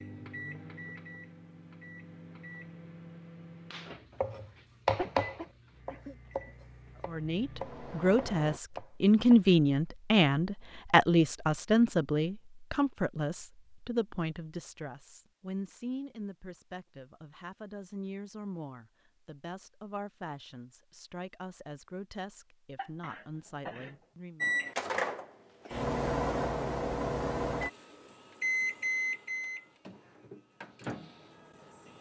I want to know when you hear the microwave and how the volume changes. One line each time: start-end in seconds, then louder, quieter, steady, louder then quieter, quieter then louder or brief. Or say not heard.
0.0-8.6 quieter then louder
24.4-31.9 quieter.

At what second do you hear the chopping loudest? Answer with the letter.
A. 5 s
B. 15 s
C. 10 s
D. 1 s
A.